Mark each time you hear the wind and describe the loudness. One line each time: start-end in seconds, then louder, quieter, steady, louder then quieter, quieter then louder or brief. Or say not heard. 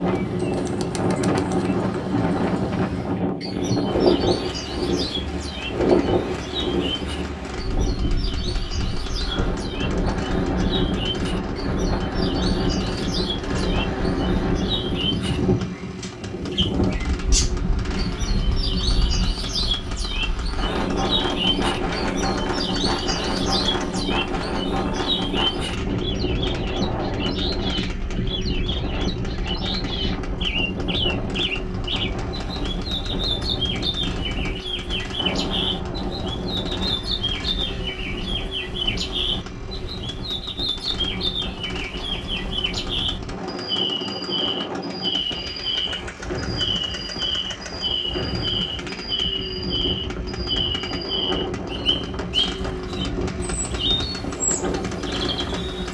0.0-55.8 quieter.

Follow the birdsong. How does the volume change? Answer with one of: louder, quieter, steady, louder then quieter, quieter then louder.
louder.